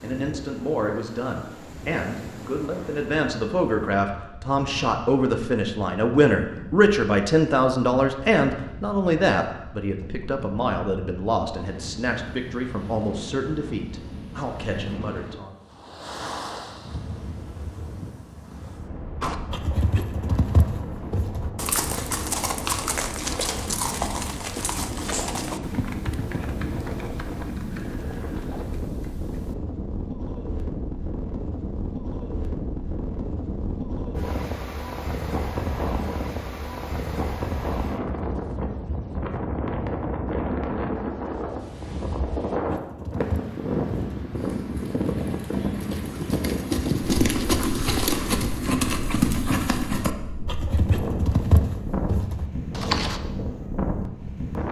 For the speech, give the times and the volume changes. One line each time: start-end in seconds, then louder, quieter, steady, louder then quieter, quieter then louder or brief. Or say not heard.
0.0-15.6 louder then quieter.